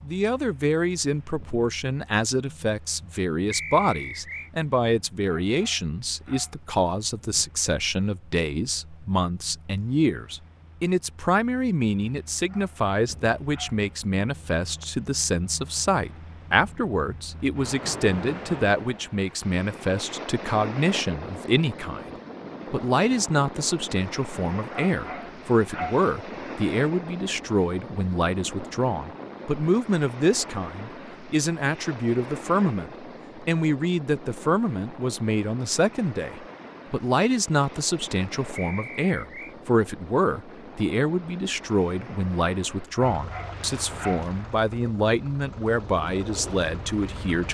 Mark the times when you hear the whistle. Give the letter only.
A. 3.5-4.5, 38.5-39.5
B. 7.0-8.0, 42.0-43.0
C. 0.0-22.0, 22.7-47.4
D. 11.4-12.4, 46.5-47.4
A.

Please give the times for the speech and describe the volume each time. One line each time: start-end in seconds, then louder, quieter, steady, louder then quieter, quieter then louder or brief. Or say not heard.
0.0-22.0 steady
22.7-47.4 steady.